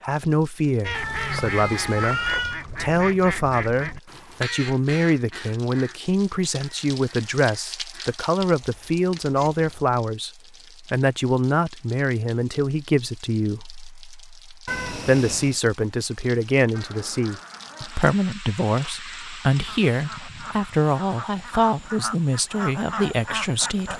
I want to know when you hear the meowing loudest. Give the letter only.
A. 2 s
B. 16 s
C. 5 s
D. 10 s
A.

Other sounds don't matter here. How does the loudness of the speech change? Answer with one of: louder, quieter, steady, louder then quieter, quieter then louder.
steady.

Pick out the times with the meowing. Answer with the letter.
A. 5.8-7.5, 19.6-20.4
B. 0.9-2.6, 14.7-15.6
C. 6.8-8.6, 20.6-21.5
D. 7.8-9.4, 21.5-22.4
B.